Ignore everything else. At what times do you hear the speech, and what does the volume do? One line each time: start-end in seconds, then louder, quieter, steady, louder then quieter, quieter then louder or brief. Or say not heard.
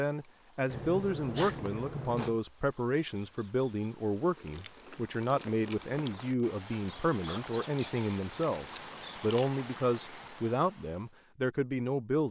0.0-12.2 steady.